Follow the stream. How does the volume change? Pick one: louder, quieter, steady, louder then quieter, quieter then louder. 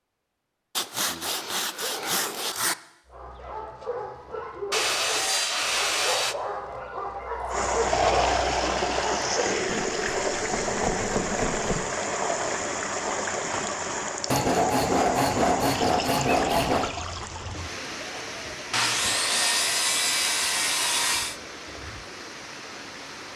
quieter.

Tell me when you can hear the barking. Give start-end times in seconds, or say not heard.
3.0-9.6.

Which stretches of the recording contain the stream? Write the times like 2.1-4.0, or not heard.
7.5-23.3.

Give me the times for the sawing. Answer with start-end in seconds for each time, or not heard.
0.8-2.8, 4.7-6.3, 9.7-11.8, 14.3-16.9, 18.7-21.4.